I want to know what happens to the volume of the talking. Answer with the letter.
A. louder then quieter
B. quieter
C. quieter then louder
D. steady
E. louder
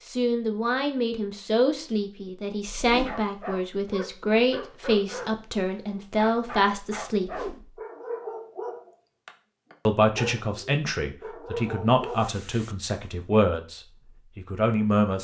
D.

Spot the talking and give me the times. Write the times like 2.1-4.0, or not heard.
0.1-7.3, 9.8-15.1.